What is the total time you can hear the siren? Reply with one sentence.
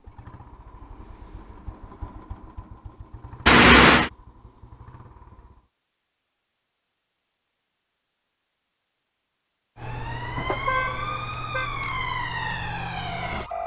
You can hear the siren for 4 seconds altogether.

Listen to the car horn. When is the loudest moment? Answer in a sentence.
The volume of the car horn peaks at 4 seconds.